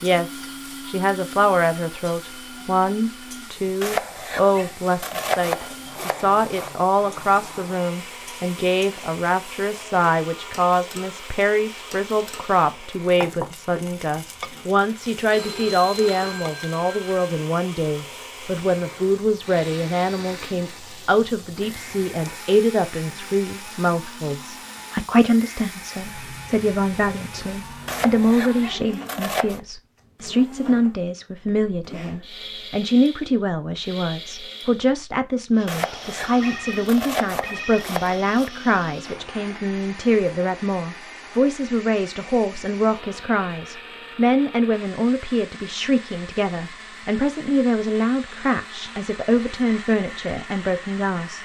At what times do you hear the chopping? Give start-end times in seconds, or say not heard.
3.8-6.7, 27.9-29.6, 35.6-38.5.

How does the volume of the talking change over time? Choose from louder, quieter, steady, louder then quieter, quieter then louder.
steady.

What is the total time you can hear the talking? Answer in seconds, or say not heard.
51 s.